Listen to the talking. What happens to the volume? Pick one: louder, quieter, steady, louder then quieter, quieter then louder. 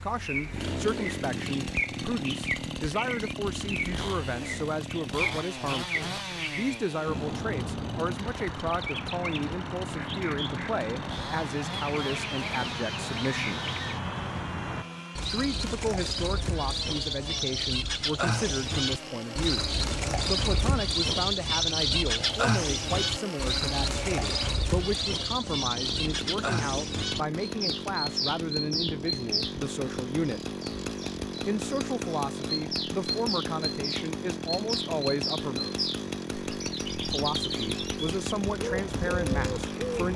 steady.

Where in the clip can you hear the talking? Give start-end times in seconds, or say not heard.
0.0-13.7, 15.3-30.4, 31.4-35.7, 37.1-40.1.